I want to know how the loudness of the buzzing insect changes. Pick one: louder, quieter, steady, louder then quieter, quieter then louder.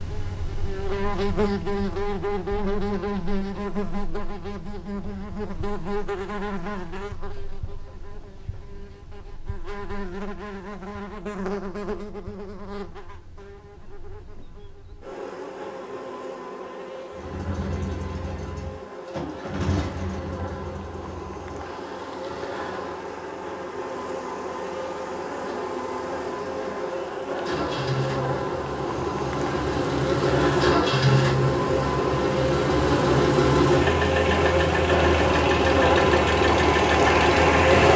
quieter then louder.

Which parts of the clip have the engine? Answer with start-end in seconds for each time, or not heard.
17.1-37.9.